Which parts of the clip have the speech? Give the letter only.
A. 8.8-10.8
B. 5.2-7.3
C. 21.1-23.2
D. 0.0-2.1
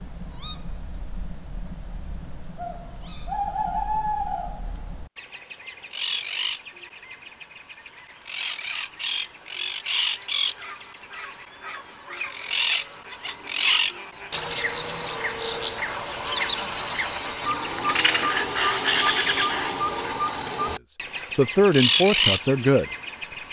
C.